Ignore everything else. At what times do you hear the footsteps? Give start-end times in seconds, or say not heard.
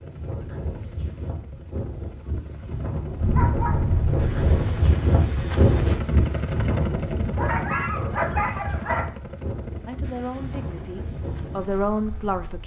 not heard.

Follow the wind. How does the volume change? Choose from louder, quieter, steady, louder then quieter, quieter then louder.
louder then quieter.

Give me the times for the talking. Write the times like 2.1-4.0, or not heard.
9.8-12.6.